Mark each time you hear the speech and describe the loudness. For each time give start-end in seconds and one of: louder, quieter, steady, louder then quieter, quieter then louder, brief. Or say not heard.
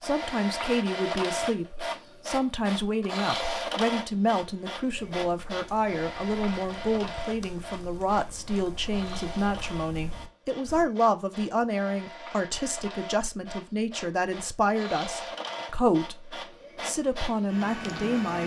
0.0-18.4 steady.